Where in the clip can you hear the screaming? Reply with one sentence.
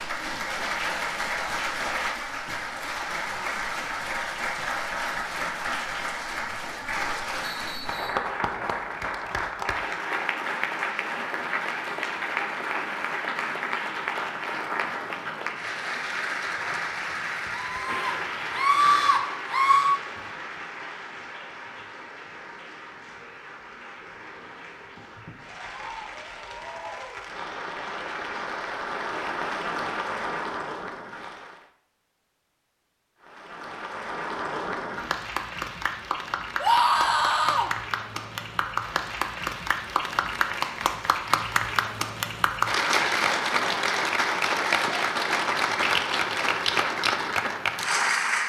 You can hear the screaming from 17.5 to 20.0 s and from 36.6 to 37.7 s.